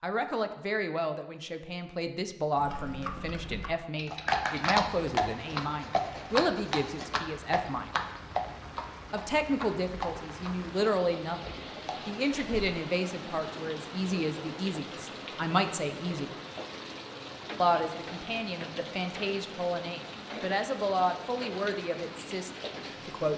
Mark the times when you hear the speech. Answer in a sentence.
You can hear the speech from 0.0 to 8.0 s, from 9.1 to 11.4 s, from 12.1 to 16.3 s and from 17.6 to 23.3 s.